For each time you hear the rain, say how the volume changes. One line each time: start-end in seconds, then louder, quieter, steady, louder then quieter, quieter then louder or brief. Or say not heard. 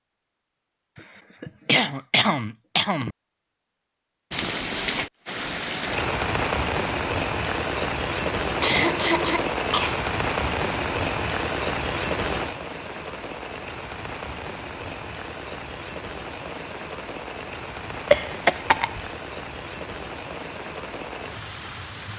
4.3-22.1 quieter.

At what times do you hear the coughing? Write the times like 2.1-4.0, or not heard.
0.9-3.1, 8.6-9.9, 18.1-19.0.